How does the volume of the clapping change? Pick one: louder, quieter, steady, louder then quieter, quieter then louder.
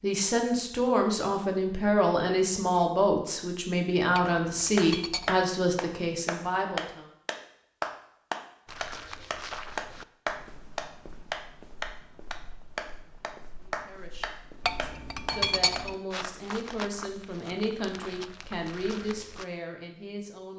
quieter.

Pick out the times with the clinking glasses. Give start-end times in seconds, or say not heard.
4.2-5.5, 14.7-15.9.